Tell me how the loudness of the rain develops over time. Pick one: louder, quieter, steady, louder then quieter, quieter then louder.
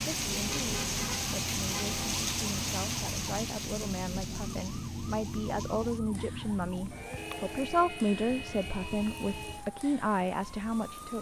quieter.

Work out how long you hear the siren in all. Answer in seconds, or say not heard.
11 s.